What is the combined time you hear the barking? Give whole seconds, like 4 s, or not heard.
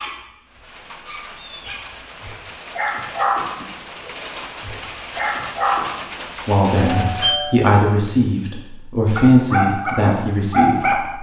8 s.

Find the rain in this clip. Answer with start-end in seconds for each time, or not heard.
0.0-7.3.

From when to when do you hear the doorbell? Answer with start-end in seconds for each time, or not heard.
6.8-7.6.